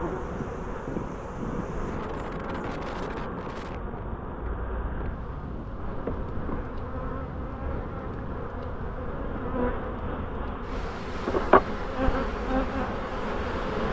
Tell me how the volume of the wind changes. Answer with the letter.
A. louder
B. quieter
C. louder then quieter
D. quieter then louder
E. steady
B.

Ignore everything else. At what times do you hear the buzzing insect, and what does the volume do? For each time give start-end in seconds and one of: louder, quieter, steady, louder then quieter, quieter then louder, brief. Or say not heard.
0.0-13.8 louder.